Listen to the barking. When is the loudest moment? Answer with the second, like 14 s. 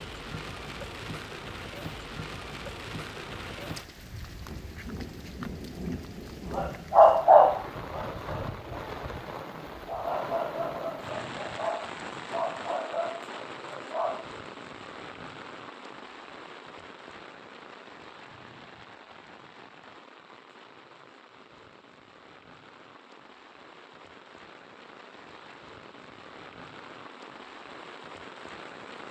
7 s.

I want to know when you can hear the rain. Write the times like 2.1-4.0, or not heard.
0.0-29.0.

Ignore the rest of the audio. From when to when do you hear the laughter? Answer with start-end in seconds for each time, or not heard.
not heard.